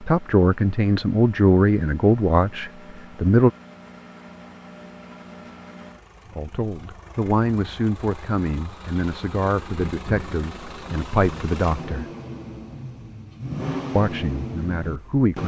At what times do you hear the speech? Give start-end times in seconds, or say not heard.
0.0-3.5, 6.3-12.1, 13.9-15.4.